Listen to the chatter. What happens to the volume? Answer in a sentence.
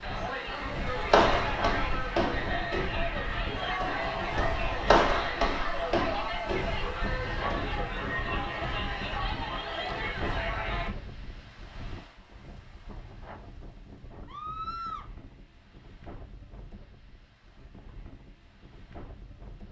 The volume of the chatter stays about the same.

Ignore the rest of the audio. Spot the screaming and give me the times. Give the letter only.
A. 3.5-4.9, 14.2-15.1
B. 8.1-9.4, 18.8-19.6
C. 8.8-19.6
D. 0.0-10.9
A.